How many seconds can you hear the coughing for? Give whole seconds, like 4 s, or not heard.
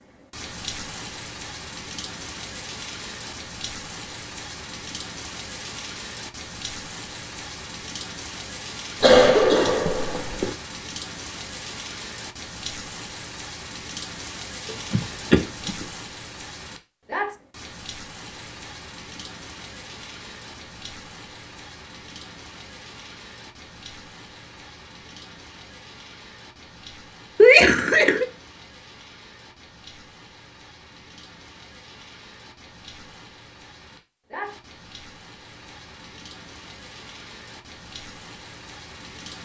4 s.